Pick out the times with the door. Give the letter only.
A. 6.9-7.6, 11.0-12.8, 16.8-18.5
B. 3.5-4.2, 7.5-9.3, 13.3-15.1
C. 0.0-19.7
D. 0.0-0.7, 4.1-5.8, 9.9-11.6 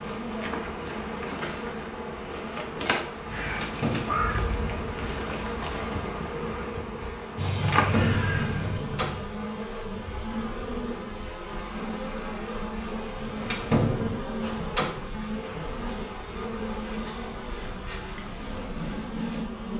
B.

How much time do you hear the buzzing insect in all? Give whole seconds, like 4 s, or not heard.
20 s.